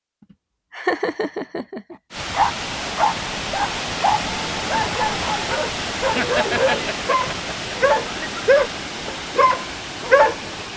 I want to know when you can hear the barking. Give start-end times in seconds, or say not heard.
2.3-10.4.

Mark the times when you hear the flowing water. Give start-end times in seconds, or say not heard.
2.1-10.7.